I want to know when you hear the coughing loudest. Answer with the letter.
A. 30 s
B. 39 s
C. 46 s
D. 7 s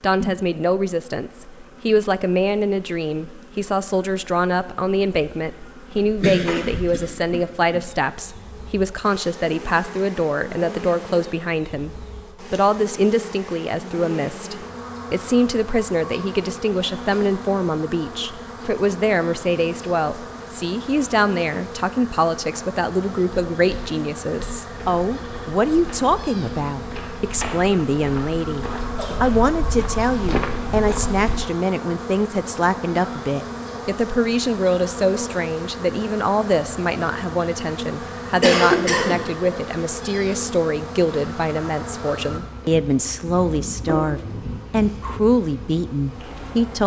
B.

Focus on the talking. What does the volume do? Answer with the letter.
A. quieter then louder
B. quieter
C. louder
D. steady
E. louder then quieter
D.